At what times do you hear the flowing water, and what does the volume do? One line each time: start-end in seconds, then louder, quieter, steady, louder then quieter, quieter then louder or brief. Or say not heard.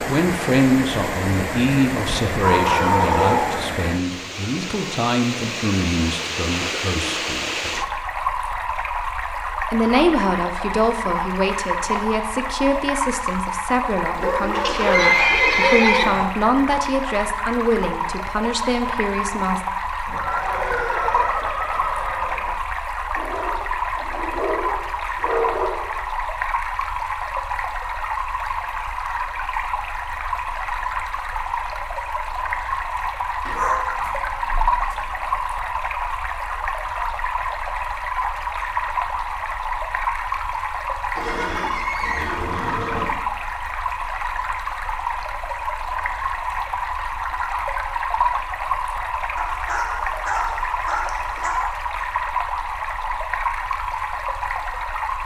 0.0-55.2 steady.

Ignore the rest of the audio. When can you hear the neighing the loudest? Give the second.
15 s.